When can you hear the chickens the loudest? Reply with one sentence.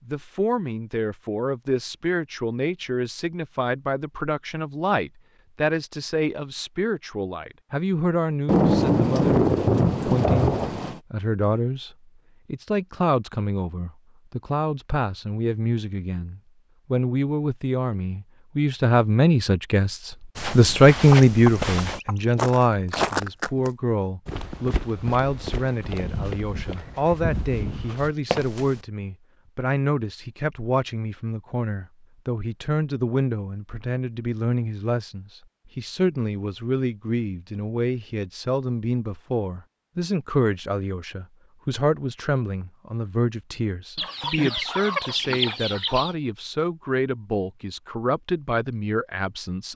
The loudest moment of the chickens is at 45 seconds.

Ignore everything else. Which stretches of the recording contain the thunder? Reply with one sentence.
You can hear the thunder from 8.4 to 11.0 s.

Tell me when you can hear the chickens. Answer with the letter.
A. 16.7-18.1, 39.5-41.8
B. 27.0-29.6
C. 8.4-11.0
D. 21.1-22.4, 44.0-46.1
D.